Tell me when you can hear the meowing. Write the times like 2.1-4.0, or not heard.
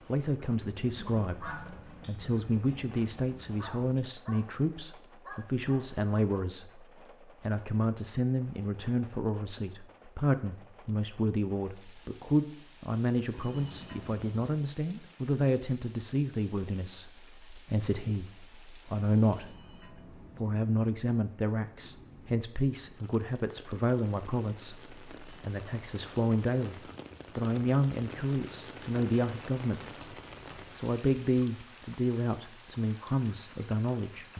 not heard.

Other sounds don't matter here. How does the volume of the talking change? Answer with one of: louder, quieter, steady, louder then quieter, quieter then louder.
steady.